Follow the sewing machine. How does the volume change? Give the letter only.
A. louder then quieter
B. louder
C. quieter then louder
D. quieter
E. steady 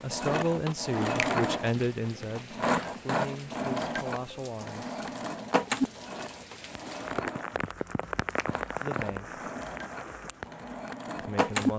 D.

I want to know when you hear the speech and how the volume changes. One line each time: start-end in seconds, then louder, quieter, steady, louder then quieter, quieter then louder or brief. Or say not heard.
0.0-5.0 quieter
8.8-9.3 brief
11.2-11.7 brief.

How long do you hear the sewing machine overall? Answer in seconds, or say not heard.
12 s.